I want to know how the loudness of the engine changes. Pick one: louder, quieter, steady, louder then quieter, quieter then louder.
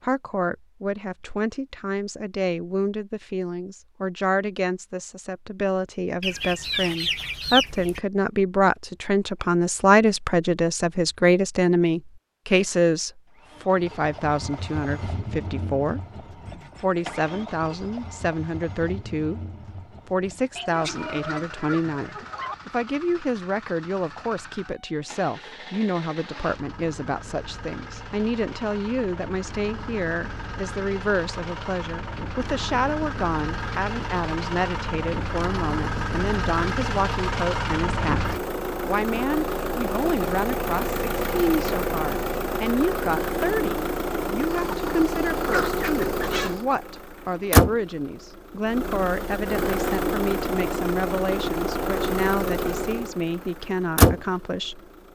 louder.